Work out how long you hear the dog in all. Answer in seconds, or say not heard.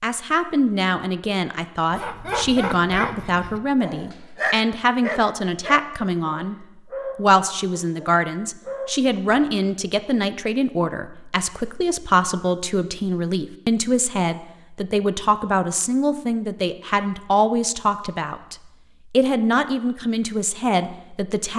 8 s.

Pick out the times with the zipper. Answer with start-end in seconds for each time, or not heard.
not heard.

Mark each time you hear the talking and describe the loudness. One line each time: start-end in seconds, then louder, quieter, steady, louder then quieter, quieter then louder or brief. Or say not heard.
0.0-21.5 steady.